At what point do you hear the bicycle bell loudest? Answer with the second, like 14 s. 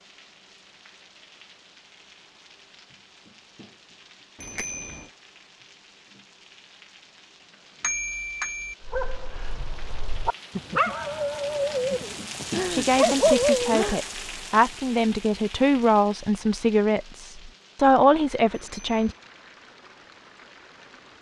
8 s.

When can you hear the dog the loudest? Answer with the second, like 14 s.
13 s.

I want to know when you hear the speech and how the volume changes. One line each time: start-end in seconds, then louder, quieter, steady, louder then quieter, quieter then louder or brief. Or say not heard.
12.7-19.1 louder.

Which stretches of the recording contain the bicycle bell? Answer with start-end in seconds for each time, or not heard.
4.4-5.0, 7.8-8.8, 18.5-19.1.